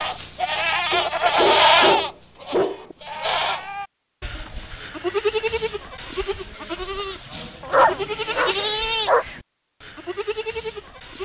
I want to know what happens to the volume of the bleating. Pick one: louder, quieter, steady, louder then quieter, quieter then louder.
quieter.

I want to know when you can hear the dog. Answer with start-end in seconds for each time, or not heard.
0.9-3.0, 7.6-9.2.